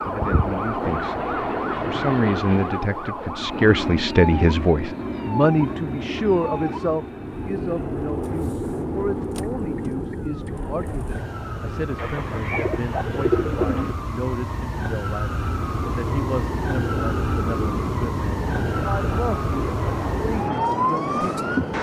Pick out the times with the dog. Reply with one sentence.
The dog can't be heard in this clip.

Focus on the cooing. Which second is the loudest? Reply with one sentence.
The loudest moment of the cooing is at 13 seconds.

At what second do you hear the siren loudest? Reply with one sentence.
The volume of the siren peaks at 21 seconds.